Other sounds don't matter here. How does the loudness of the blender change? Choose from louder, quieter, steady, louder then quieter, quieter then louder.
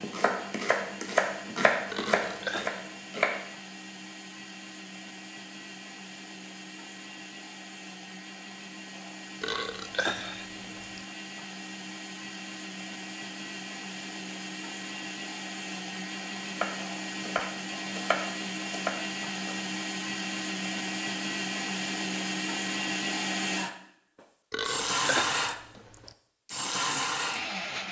louder.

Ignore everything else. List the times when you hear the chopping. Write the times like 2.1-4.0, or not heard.
0.0-3.4, 16.6-19.6.